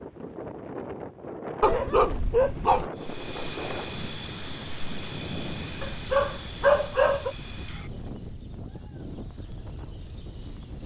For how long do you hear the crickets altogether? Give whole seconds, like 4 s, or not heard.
8 s.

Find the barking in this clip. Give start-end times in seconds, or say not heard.
1.6-2.9, 5.8-7.3.